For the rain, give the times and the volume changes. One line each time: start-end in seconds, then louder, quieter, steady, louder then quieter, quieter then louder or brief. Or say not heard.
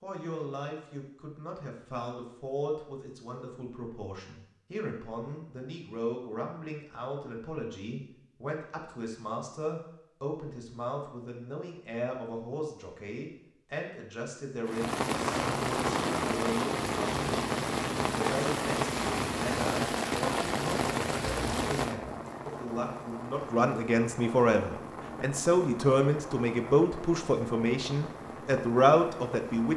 14.7-29.7 quieter.